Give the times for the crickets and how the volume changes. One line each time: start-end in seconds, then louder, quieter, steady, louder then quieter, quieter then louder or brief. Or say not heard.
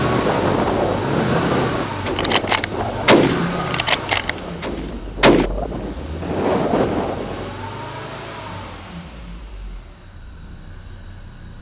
not heard.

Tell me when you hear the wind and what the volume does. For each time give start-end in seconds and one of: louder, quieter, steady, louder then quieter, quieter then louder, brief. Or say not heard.
0.0-7.5 quieter then louder.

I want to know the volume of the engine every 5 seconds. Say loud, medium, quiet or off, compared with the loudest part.
loud, medium, quiet.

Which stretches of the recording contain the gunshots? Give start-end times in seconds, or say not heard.
2.0-5.5.